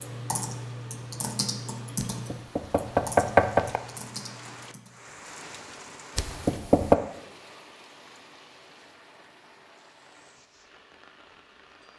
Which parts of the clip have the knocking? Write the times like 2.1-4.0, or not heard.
2.0-3.8, 6.2-7.0.